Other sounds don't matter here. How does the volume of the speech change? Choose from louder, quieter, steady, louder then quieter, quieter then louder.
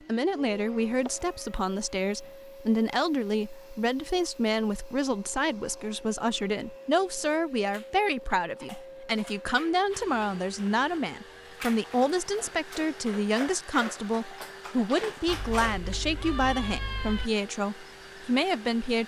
steady.